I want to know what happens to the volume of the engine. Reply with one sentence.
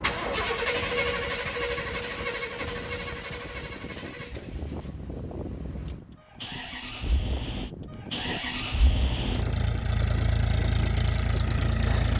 The loudness of the engine goes down, then up.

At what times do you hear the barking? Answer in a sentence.
You can't hear the barking here.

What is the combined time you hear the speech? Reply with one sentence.
The speech can't be heard in this clip.